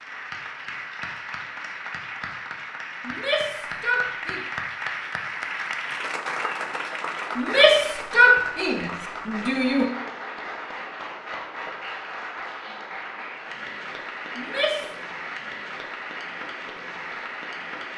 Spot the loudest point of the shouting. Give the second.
8 s.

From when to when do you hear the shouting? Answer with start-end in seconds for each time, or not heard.
3.0-4.4, 7.3-9.9, 14.3-14.9.